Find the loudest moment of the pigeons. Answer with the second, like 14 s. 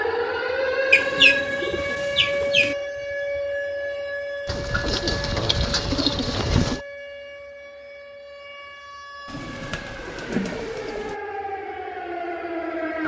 1 s.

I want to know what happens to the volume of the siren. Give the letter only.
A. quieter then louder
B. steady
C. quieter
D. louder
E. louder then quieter
A.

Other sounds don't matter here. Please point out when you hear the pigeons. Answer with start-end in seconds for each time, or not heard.
0.9-2.8, 4.5-6.8, 9.2-11.2.